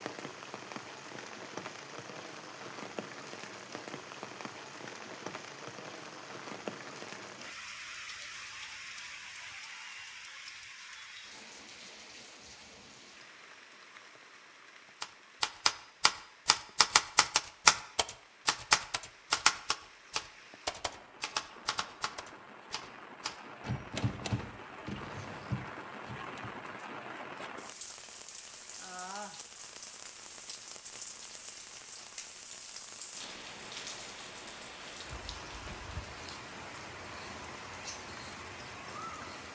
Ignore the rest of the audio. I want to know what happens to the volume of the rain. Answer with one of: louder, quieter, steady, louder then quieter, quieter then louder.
quieter then louder.